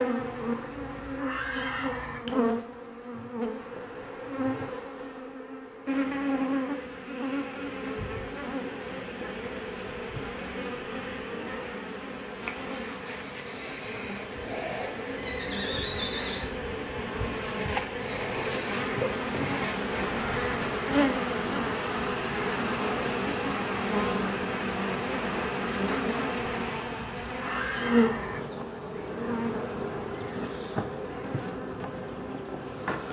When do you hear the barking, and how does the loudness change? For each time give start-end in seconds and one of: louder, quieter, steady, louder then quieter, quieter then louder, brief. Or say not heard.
not heard.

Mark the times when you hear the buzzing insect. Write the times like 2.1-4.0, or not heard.
0.0-33.0.